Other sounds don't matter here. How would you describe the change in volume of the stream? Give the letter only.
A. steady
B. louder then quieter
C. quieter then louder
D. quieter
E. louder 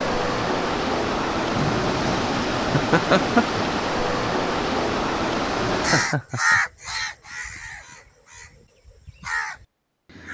A.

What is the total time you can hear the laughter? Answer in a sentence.
The laughter can be heard for 3 seconds in total.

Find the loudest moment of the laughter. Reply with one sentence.
The volume of the laughter peaks at 3 seconds.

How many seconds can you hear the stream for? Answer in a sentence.
You can hear the stream for 6 seconds altogether.